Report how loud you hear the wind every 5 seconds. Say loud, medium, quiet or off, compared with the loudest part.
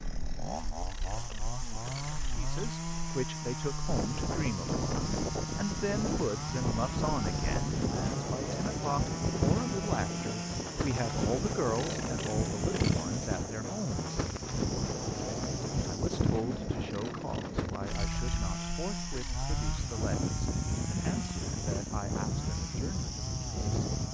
medium, loud, loud, loud, loud.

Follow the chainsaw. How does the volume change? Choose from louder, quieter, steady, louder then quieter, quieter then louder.
steady.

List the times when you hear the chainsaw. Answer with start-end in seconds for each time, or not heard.
0.0-24.0.